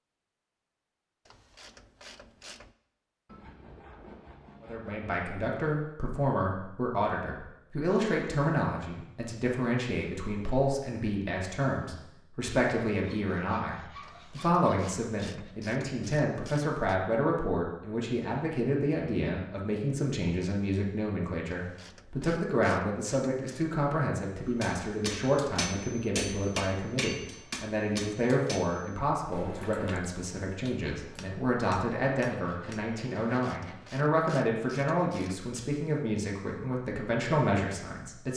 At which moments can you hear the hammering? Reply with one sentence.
The hammering can be heard from 24.6 to 33.0 s.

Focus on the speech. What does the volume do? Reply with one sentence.
The volume of the speech stays about the same.